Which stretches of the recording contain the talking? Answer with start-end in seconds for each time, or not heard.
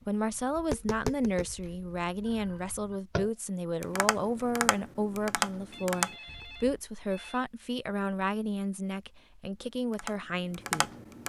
0.1-10.9.